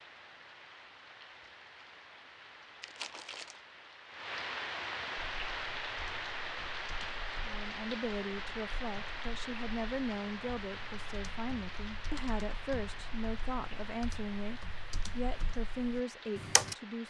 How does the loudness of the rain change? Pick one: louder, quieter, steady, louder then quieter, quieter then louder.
louder then quieter.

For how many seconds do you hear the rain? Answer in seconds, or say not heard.
17 s.